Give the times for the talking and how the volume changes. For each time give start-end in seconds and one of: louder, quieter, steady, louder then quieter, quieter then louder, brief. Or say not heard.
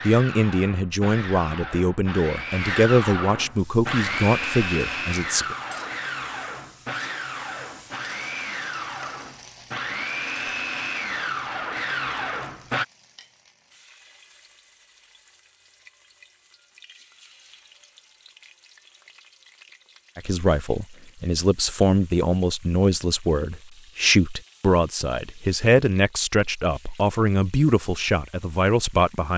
0.0-5.5 steady
20.1-29.3 steady.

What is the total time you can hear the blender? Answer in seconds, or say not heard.
13 s.